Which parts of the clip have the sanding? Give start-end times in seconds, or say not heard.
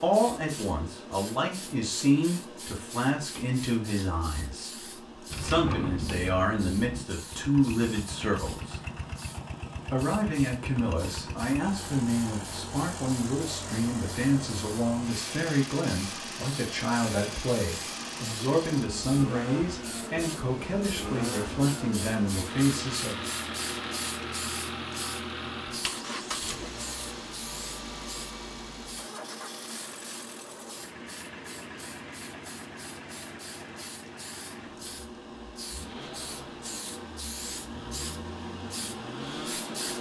not heard.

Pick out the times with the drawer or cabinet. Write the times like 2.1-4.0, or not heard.
5.3-7.0.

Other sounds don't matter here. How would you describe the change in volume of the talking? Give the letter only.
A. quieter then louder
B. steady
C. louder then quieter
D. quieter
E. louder
B.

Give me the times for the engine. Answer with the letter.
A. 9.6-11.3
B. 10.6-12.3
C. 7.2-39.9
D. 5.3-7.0
C.